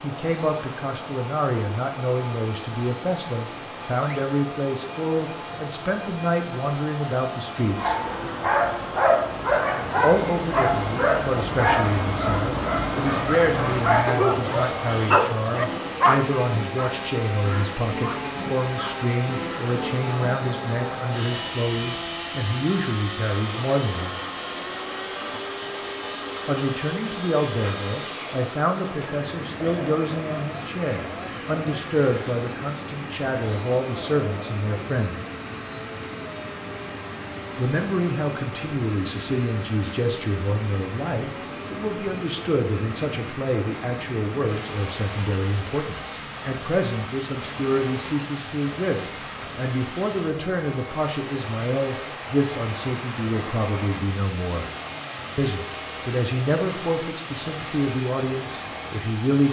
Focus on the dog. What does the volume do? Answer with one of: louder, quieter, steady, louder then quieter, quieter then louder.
quieter.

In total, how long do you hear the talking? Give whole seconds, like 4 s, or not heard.
52 s.